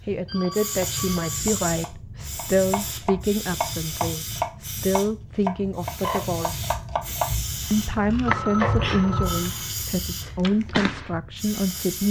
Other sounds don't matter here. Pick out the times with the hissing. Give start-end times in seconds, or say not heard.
0.0-12.0.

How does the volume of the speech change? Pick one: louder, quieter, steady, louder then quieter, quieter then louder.
steady.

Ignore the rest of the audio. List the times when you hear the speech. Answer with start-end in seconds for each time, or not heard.
0.0-6.7, 7.7-12.0.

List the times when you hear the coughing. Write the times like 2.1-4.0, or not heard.
not heard.